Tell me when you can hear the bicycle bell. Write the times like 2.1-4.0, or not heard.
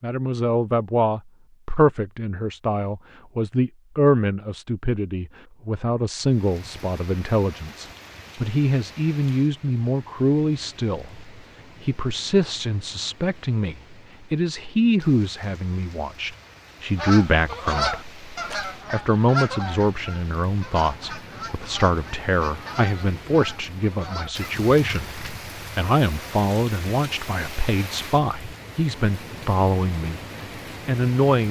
not heard.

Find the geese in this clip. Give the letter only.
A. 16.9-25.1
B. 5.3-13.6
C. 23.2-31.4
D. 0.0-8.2
A.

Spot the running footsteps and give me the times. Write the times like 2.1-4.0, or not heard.
not heard.